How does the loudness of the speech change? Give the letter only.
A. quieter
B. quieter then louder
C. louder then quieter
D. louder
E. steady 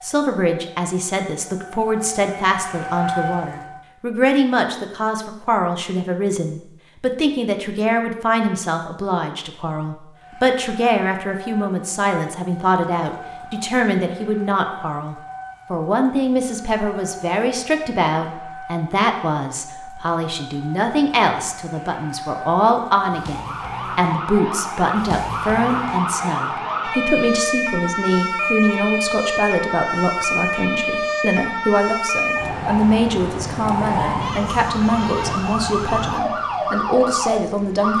E.